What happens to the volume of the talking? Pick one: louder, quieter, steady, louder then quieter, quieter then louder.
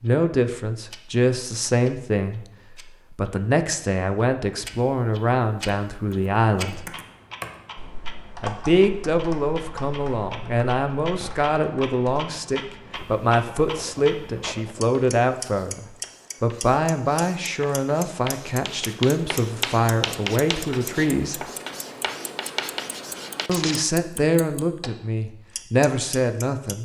steady.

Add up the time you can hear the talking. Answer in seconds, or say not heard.
23 s.